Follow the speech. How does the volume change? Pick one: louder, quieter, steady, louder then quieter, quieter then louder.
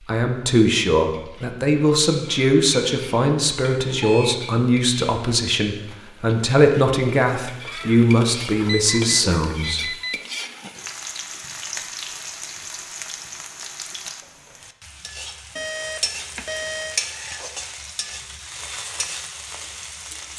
steady.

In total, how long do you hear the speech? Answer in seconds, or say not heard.
10 s.